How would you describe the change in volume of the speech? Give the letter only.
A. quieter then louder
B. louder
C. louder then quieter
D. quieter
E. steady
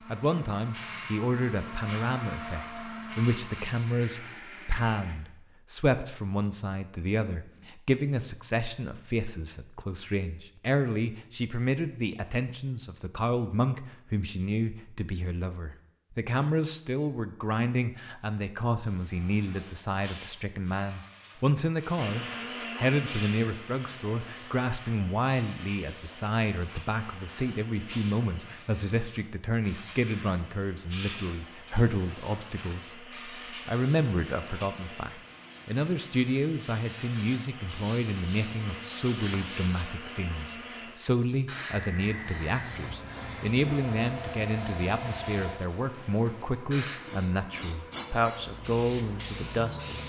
E.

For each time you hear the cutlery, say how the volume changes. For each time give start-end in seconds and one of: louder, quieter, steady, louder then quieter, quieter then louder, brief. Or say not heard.
not heard.